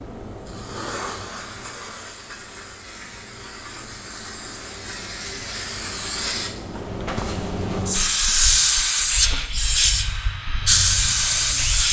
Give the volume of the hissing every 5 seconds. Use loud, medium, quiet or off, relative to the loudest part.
quiet, loud, loud.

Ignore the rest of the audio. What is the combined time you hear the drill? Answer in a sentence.
You can hear the drill for 4 seconds altogether.